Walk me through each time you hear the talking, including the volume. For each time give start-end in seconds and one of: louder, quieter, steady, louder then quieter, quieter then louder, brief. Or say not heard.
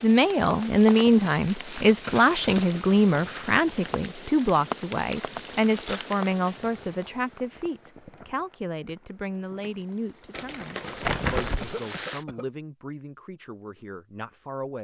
0.0-14.8 quieter.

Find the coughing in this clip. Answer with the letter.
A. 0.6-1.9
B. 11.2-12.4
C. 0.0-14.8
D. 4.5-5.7
B.